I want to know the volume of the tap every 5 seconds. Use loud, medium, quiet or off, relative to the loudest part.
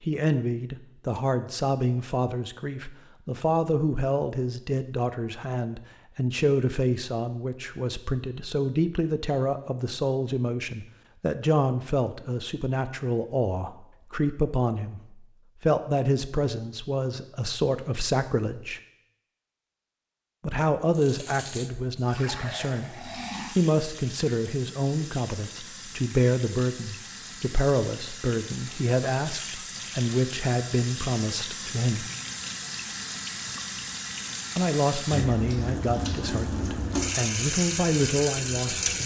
off, off, off, off, medium, medium, medium, loud.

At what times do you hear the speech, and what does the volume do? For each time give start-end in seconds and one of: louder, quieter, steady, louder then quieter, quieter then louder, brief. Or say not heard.
0.1-18.8 steady
20.4-32.1 steady
34.5-39.0 quieter then louder.